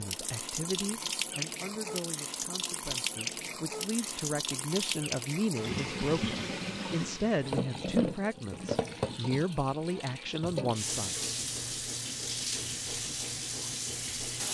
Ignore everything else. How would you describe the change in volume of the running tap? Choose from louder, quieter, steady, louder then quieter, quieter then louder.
steady.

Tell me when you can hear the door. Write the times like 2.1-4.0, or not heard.
not heard.